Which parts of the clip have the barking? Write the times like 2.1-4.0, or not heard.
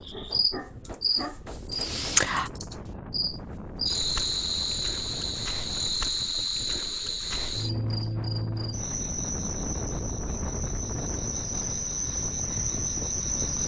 0.1-1.4.